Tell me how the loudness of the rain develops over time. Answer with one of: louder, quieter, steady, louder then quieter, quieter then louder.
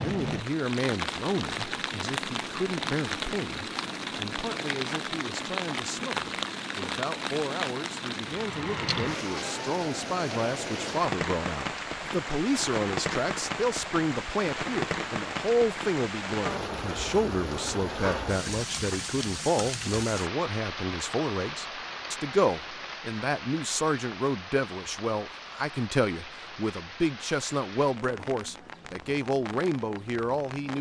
quieter.